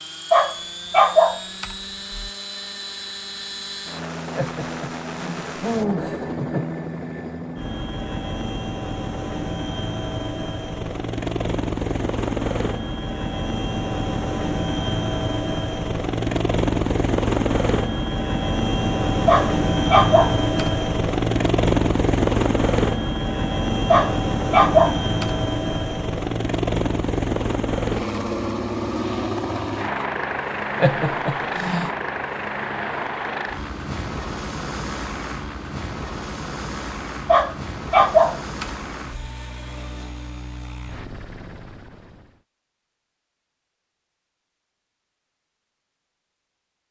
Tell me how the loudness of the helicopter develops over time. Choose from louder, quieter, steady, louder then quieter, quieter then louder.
louder then quieter.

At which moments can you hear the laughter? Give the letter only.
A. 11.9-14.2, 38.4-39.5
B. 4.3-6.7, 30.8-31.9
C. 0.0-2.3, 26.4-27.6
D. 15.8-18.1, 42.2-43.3
B.